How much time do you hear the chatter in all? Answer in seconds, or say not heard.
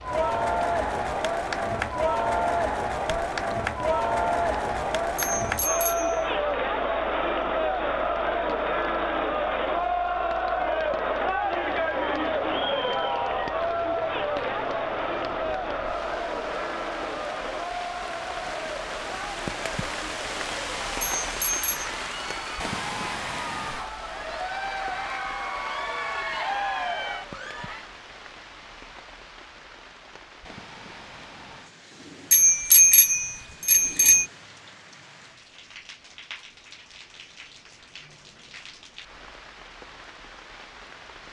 28 s.